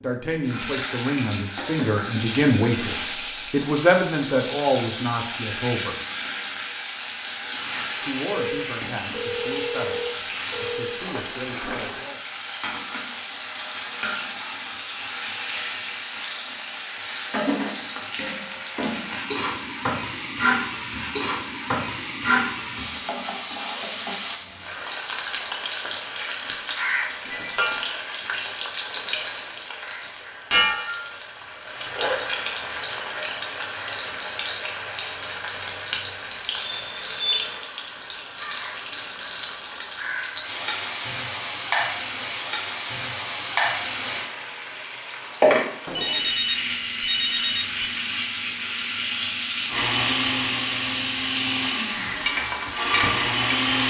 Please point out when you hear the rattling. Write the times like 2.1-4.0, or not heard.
10.9-12.1.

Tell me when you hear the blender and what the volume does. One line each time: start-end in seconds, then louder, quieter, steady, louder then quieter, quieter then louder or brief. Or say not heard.
49.6-53.8 quieter then louder.